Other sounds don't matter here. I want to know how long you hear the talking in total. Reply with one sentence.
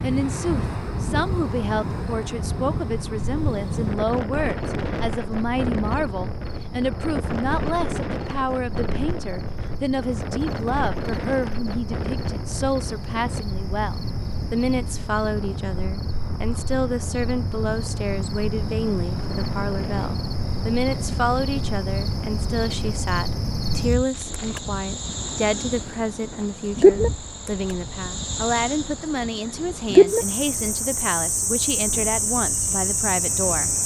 The talking can be heard for 34 seconds in total.